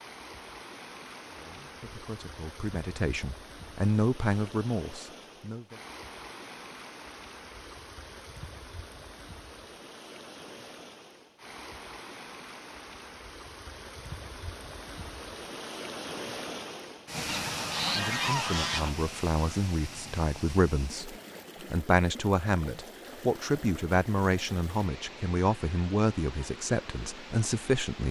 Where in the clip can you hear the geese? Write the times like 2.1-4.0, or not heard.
17.2-18.9.